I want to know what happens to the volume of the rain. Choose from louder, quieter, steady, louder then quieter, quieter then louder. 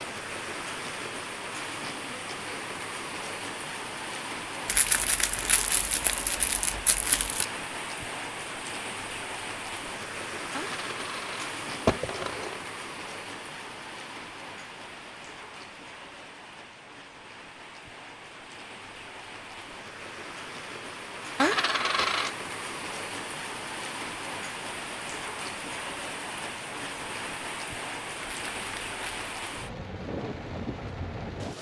quieter then louder.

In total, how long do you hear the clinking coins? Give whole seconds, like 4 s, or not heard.
3 s.